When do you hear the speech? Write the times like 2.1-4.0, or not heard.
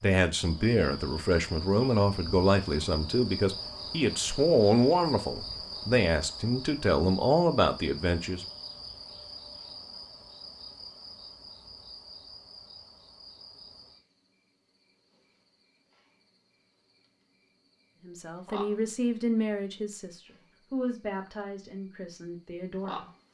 0.0-8.4, 18.0-23.1.